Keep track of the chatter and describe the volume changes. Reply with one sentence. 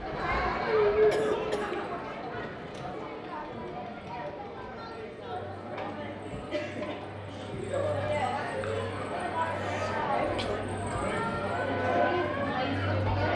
The volume of the chatter goes down, then up.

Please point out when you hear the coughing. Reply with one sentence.
You can hear the coughing from 0.4 to 1.9 s and from 9.6 to 10.6 s.